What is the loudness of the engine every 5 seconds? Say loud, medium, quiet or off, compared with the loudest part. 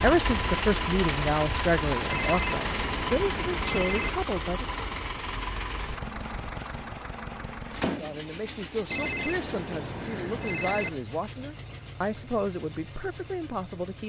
loud, medium, quiet.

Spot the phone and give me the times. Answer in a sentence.
The phone can be heard from 2.1 to 4.1 s and from 8.9 to 10.9 s.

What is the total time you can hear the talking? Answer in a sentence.
You can hear the talking for 11 seconds altogether.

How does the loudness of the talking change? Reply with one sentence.
The loudness of the talking goes down.